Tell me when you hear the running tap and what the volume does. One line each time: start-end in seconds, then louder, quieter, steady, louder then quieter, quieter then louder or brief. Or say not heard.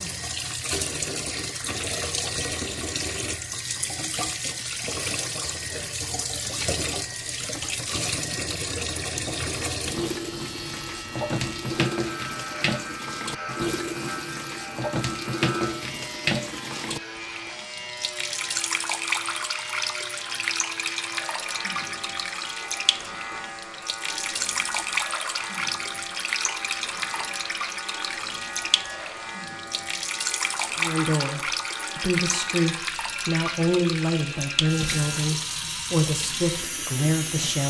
0.0-37.6 steady.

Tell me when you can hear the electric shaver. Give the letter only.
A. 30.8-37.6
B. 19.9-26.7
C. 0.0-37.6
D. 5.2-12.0
C.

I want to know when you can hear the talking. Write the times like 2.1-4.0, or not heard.
30.8-37.6.